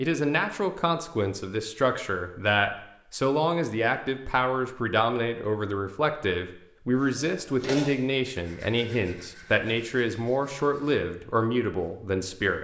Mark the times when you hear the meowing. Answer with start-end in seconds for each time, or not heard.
not heard.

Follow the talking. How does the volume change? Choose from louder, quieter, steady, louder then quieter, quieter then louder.
steady.